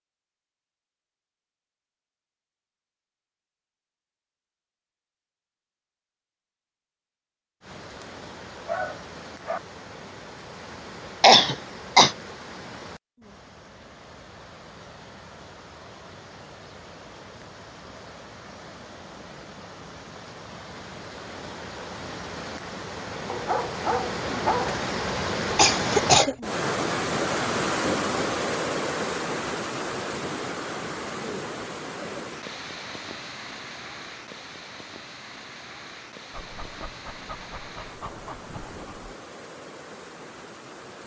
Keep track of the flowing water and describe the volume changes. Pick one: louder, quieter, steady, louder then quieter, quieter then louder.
louder then quieter.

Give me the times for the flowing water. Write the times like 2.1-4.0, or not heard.
7.6-41.0.